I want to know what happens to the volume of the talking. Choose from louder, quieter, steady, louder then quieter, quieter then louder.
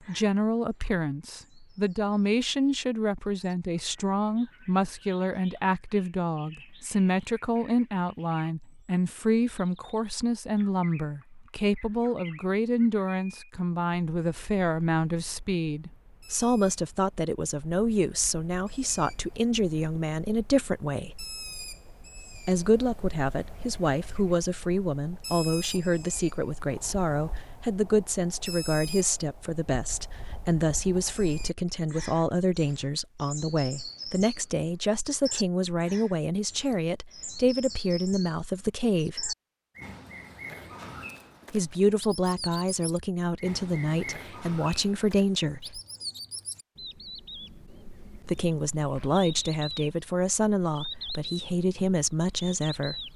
steady.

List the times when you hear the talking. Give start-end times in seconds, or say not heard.
0.1-21.2, 22.4-39.4, 41.5-45.8, 48.2-53.0.